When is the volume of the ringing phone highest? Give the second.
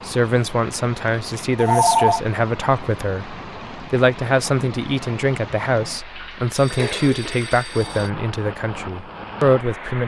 2 s.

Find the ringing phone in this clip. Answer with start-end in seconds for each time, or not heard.
1.6-2.2, 6.5-8.1.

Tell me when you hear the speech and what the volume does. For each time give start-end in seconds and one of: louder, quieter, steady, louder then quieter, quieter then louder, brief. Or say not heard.
0.1-10.0 steady.